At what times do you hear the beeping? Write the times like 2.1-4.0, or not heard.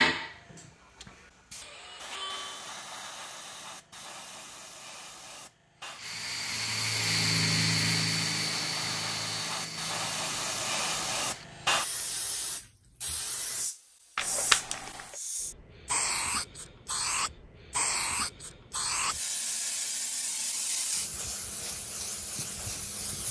14.2-15.2.